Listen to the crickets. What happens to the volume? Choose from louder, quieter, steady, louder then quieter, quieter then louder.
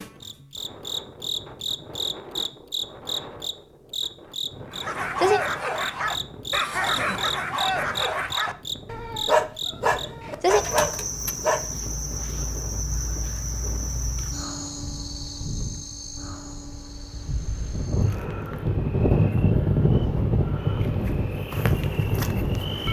quieter.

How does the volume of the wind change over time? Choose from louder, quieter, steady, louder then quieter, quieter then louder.
louder.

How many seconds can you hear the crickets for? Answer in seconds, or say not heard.
23 s.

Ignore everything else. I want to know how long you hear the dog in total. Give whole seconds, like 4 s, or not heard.
7 s.